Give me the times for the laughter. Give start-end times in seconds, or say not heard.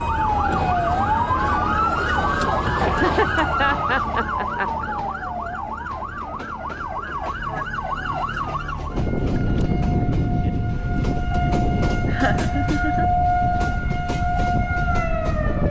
2.8-5.3, 12.1-13.1.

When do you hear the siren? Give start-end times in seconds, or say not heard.
0.0-15.6.